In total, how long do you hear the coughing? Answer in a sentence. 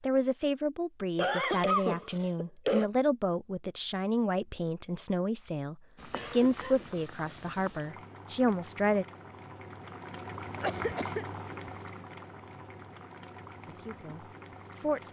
The coughing can be heard for 3 seconds in total.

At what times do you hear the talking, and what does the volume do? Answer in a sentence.
You can hear the talking from 0.0 to 9.1 s, at a steady volume; and briefly from 13.6 to 15.0 s.